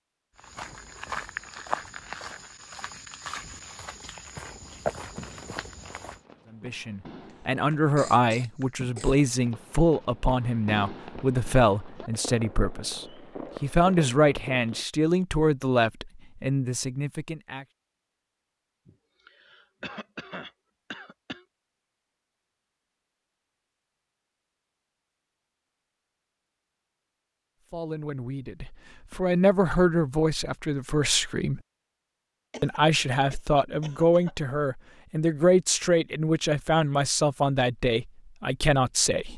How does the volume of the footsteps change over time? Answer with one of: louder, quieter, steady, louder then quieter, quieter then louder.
quieter then louder.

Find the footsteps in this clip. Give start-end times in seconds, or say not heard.
0.3-6.2.